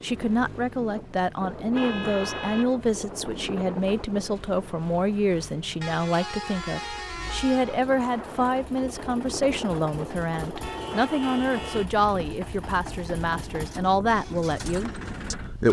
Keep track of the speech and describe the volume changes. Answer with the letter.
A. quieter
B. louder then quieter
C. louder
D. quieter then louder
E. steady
E.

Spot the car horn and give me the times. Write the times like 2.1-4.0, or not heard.
1.7-2.8, 5.8-7.8, 10.6-11.9.